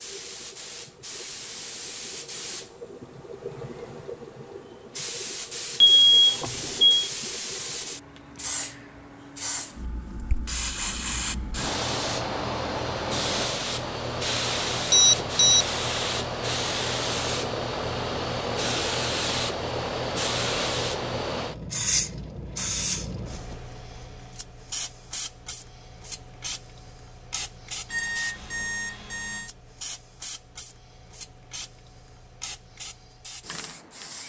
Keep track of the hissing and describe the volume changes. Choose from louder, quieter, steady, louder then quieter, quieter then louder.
louder then quieter.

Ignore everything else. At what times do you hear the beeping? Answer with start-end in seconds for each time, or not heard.
5.8-7.1, 14.9-15.7, 27.9-29.5.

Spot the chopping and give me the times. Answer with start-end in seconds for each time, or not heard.
not heard.